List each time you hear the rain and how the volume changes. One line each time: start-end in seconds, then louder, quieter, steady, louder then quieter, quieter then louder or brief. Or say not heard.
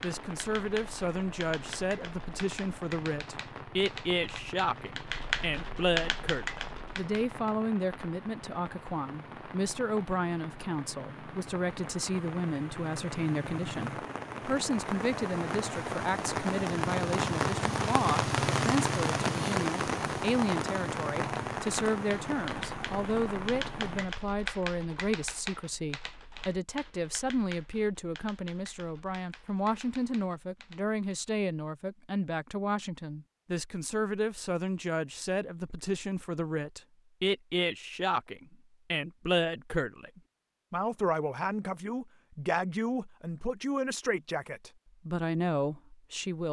0.0-24.1 louder.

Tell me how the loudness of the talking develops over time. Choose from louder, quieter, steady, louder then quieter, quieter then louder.
steady.